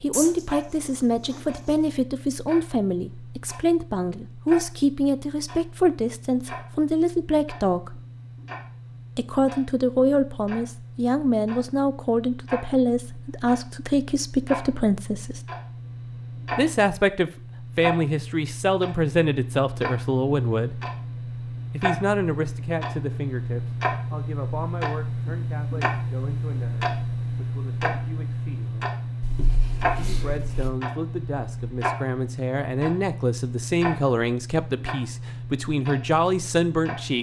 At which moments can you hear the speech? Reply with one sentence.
You can hear the speech from 0.0 to 8.0 s, from 9.2 to 15.4 s, from 16.6 to 20.8 s, from 21.7 to 29.0 s and from 29.9 to 37.1 s.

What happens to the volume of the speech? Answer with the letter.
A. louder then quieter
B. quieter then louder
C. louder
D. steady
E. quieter
B.